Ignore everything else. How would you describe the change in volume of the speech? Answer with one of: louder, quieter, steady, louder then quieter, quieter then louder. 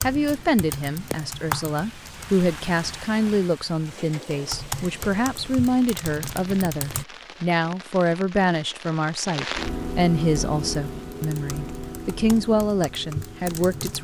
steady.